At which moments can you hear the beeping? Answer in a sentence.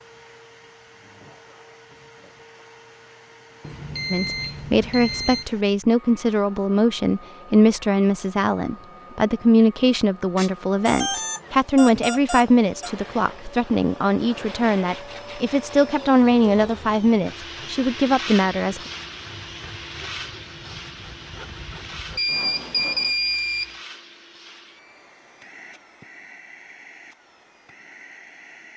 You can hear the beeping from 3.6 to 5.5 s, from 10.3 to 12.9 s and from 22.1 to 23.8 s.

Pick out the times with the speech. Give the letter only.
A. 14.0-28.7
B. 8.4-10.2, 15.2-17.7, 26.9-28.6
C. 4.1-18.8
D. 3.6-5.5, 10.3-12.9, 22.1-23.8
C.